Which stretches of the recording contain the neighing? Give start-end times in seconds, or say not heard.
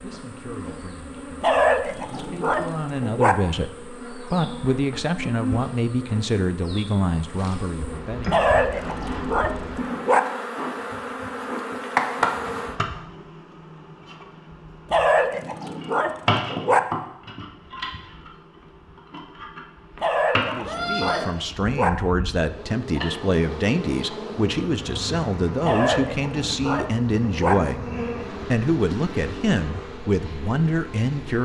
20.6-21.3.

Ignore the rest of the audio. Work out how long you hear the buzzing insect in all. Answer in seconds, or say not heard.
31 s.